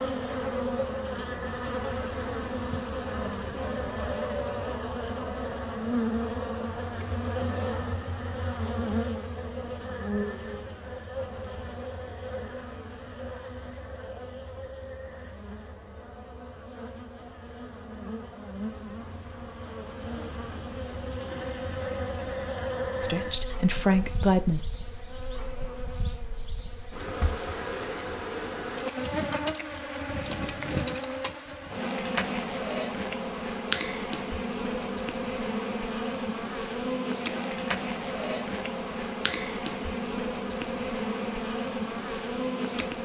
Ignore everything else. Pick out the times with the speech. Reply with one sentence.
You can hear the speech from 23.0 to 24.6 s.